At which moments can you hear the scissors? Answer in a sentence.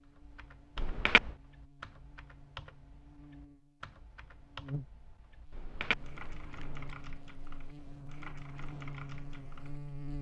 You can hear the scissors from 0.8 to 1.3 s and from 5.5 to 7.0 s.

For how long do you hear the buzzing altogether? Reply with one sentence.
The buzzing can be heard for 10 seconds in total.